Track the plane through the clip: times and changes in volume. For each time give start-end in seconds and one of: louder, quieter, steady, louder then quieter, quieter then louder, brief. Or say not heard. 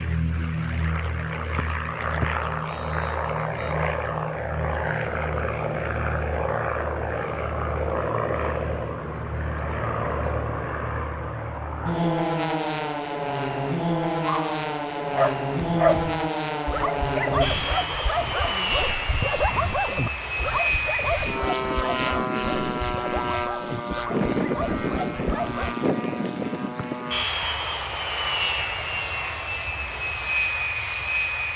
0.0-31.5 steady.